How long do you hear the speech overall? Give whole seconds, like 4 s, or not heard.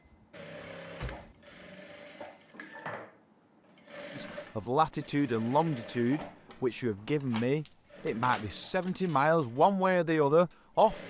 7 s.